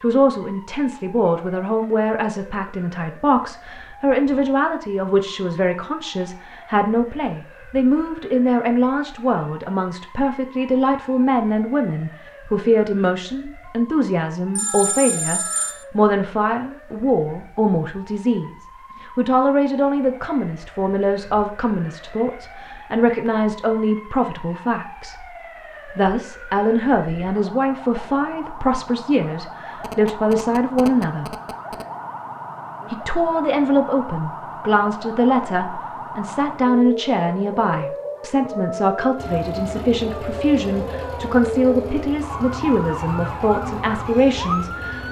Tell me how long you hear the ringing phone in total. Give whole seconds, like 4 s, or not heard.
3 s.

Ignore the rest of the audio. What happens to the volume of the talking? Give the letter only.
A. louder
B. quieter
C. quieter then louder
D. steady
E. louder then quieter
D.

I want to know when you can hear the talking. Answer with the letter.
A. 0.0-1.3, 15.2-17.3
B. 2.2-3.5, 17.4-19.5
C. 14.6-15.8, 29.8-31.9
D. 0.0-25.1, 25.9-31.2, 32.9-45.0
D.